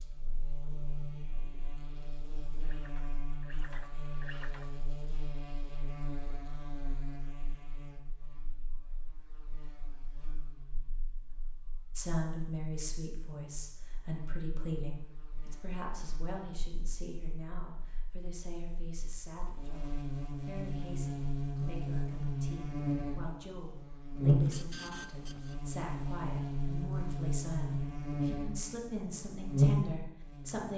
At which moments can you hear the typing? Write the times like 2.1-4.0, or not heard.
not heard.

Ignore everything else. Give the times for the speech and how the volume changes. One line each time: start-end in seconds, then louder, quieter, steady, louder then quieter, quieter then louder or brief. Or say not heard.
11.9-30.7 quieter then louder.